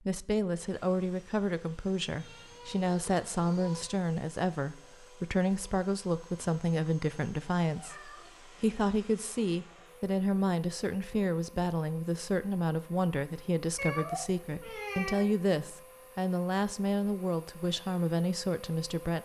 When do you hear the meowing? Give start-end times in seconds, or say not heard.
2.0-3.9, 7.7-8.3, 13.8-15.3.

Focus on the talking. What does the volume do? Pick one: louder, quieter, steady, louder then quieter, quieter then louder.
steady.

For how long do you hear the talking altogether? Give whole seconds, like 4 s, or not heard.
19 s.